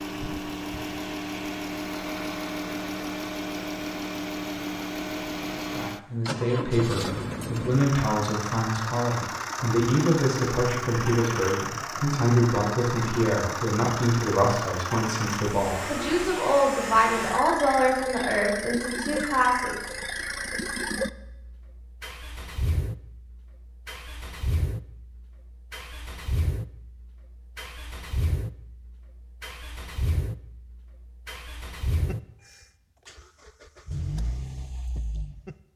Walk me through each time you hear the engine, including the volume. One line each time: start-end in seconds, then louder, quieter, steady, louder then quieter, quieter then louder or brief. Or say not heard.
0.0-35.5 quieter.